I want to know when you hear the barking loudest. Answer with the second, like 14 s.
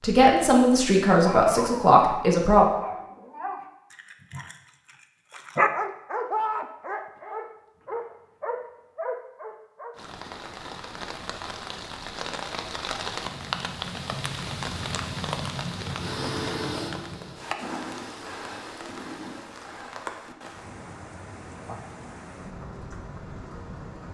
6 s.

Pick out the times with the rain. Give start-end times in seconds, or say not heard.
9.9-24.0.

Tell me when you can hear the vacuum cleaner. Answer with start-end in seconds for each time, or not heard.
15.9-19.4.